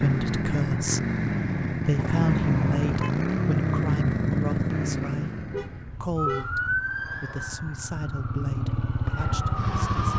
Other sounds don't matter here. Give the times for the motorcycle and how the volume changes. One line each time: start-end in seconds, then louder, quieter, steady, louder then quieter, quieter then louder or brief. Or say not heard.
0.0-10.1 quieter then louder.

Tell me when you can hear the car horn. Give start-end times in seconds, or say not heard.
1.9-3.1, 5.3-6.8.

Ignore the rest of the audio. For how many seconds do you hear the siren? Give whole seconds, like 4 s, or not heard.
4 s.